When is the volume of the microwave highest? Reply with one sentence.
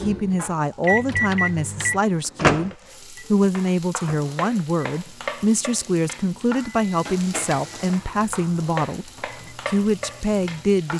The volume of the microwave peaks at 2 seconds.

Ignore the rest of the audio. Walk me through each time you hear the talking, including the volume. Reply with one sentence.
You can hear the talking from 0.0 to 10.9 s, at a steady volume.